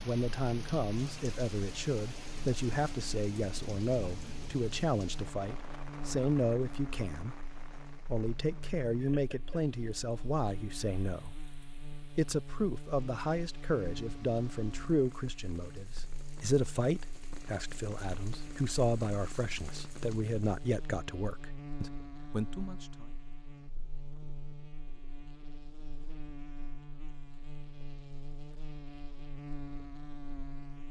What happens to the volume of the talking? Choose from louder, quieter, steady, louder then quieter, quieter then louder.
steady.